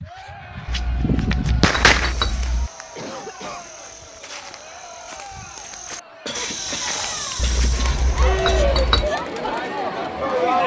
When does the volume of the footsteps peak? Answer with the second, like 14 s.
7 s.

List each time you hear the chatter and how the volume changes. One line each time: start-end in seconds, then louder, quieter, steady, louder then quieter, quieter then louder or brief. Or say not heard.
0.0-10.6 louder.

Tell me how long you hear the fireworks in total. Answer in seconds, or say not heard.
2 s.